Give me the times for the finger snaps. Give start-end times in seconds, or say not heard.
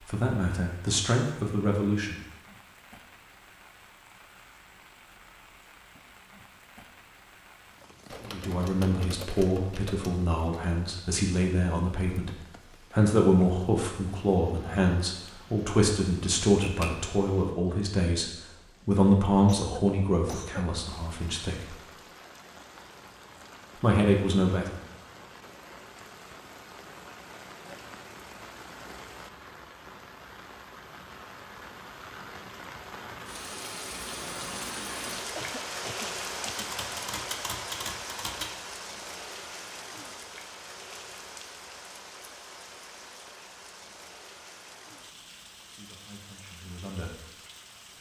not heard.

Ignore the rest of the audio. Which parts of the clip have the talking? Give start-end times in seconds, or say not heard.
0.0-2.2, 8.2-21.8, 23.8-24.8, 45.5-47.1.